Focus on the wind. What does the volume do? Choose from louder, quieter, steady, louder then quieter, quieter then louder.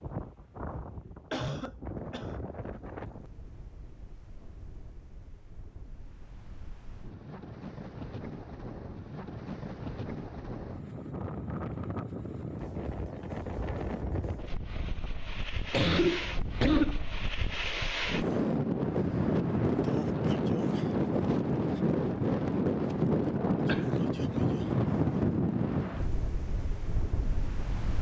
louder.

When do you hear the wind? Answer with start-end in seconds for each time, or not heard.
0.0-27.9.